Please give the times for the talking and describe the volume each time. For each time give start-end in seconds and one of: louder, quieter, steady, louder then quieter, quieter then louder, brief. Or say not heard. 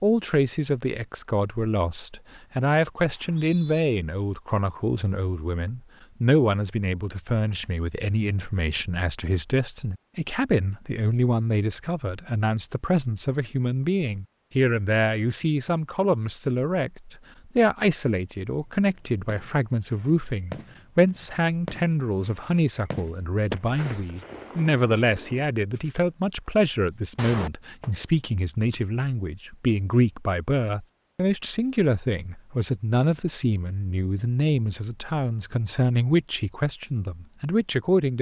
0.0-38.1 steady.